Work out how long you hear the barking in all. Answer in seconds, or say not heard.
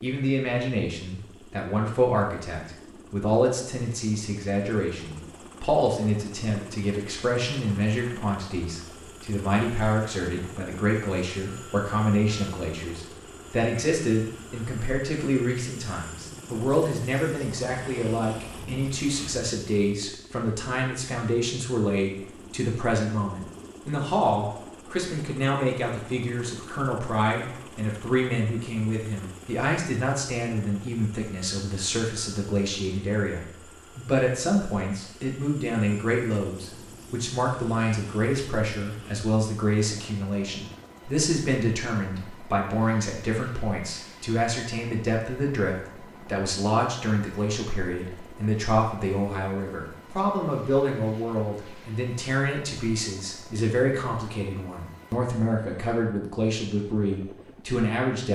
not heard.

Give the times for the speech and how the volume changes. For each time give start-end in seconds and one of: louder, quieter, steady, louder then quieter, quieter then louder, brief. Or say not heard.
0.0-58.2 steady.